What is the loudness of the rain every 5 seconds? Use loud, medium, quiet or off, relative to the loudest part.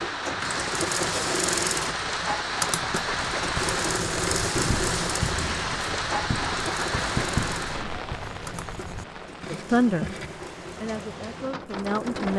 loud, loud, medium.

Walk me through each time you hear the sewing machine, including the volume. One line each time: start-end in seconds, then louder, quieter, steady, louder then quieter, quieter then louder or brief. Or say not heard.
0.0-12.3 quieter.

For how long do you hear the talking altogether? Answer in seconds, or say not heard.
2 s.